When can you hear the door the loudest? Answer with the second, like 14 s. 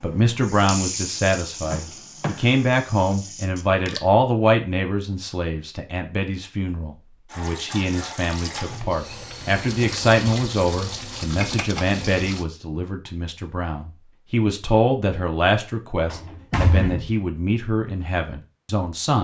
17 s.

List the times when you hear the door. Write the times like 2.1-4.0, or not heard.
1.6-2.5, 16.1-17.1.